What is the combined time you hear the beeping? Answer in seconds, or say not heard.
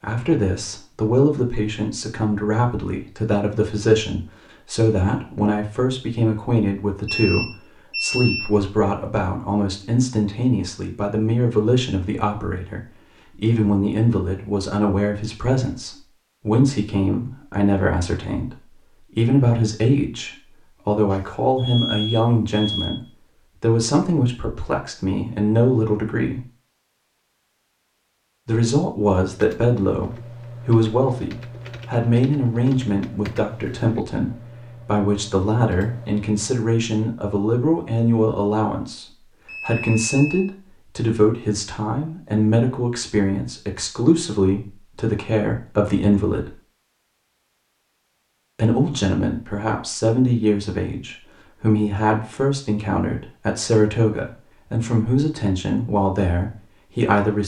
4 s.